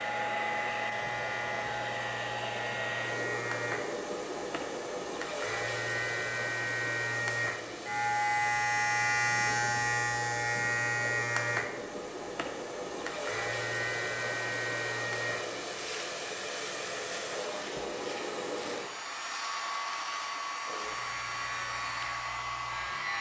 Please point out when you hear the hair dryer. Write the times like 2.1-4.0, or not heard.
0.0-23.1.